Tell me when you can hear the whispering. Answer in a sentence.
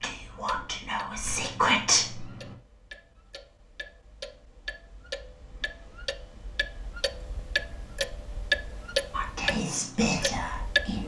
The whispering can be heard from 0.0 to 2.4 s and from 9.1 to 11.0 s.